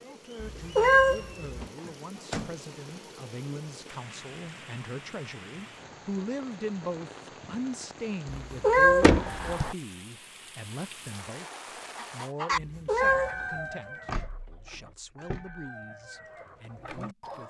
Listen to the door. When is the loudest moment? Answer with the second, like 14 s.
9 s.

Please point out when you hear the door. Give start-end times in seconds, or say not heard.
1.6-2.5, 9.0-9.8, 14.1-15.7.